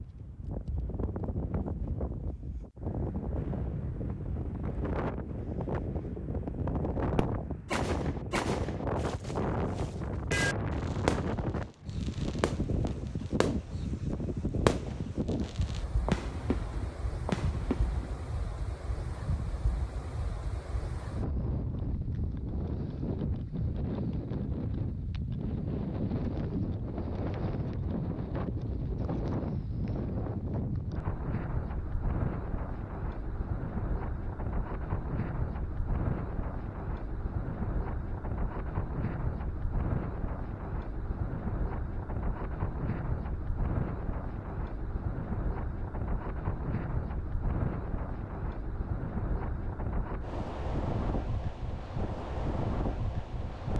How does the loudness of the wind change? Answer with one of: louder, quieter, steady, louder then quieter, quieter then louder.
steady.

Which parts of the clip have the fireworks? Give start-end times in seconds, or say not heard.
7.2-18.1.